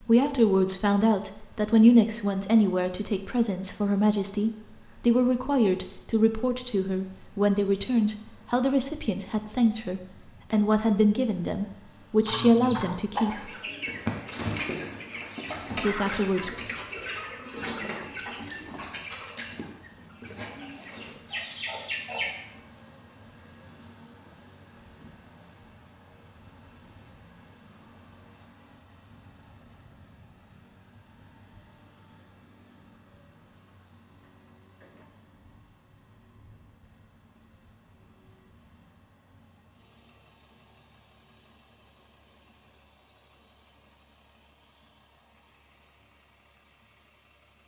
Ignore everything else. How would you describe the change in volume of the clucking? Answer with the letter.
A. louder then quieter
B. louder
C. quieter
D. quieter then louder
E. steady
C.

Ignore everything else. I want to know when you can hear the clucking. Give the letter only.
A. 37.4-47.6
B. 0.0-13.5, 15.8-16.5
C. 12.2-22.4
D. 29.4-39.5
C.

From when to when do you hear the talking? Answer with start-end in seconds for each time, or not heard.
0.0-13.5, 15.8-16.5.